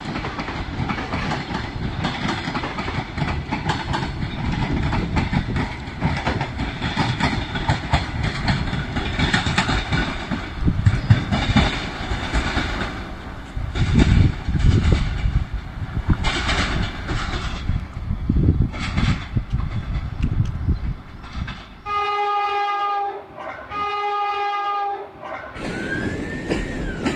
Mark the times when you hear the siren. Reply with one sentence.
You can hear the siren from 25.7 to 27.1 s.